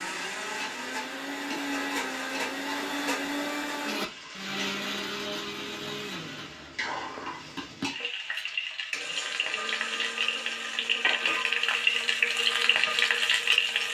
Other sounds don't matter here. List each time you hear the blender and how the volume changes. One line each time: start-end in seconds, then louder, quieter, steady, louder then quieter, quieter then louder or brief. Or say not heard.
0.0-13.8 quieter.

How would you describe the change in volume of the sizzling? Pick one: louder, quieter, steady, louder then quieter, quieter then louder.
louder.